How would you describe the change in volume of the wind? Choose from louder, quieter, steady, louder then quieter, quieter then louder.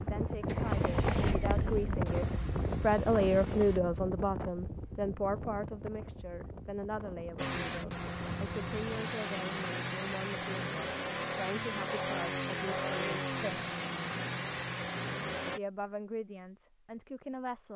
quieter.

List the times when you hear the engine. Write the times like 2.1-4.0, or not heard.
0.2-3.8, 7.3-15.6.